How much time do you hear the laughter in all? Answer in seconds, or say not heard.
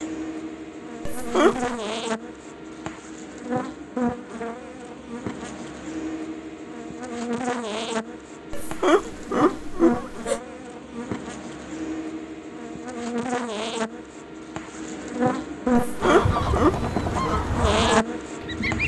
4 s.